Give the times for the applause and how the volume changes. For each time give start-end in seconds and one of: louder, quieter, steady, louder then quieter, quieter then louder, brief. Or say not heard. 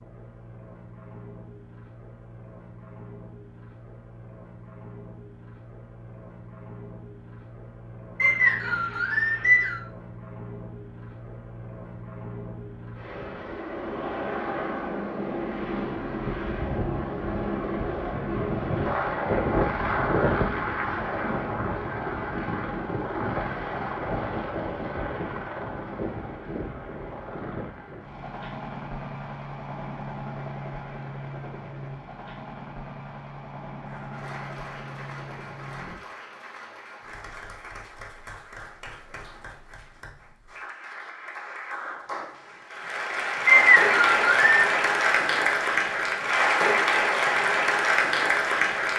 33.8-48.9 louder.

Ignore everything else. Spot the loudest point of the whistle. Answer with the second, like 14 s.
44 s.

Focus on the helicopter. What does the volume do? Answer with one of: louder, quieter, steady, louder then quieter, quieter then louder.
louder then quieter.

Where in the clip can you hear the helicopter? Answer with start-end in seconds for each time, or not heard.
0.0-36.0.